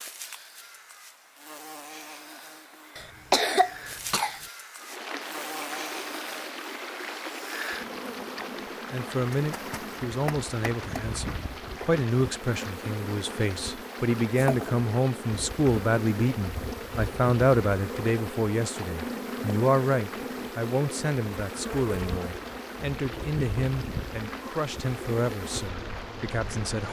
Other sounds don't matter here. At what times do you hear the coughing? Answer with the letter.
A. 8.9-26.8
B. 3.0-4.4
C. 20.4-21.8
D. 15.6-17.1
B.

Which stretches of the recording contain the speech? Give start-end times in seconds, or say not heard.
8.9-26.8.